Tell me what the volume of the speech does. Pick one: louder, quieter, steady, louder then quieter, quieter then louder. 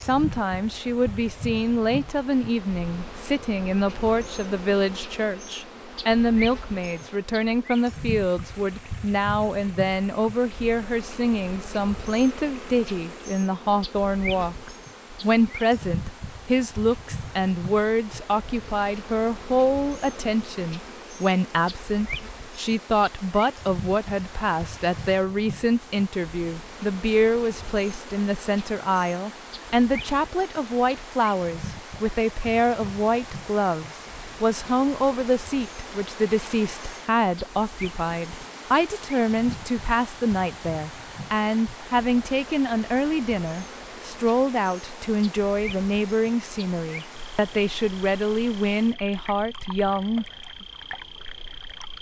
steady.